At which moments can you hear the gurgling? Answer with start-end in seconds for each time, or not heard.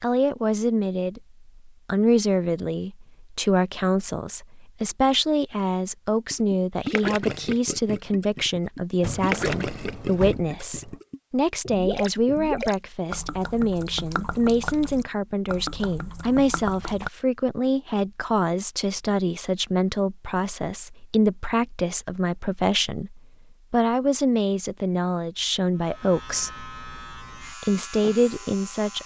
6.3-17.1.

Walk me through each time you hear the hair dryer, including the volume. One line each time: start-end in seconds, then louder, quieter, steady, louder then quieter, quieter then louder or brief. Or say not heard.
not heard.